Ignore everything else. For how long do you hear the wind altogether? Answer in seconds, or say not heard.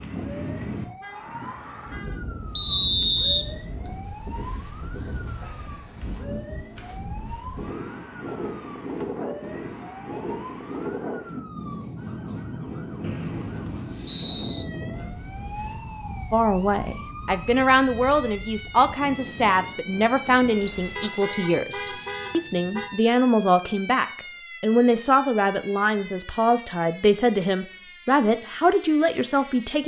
21 s.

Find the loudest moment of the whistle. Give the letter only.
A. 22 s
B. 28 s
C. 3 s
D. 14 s
C.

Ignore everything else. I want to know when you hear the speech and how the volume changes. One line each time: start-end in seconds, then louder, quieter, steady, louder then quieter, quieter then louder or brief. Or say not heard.
16.3-29.8 steady.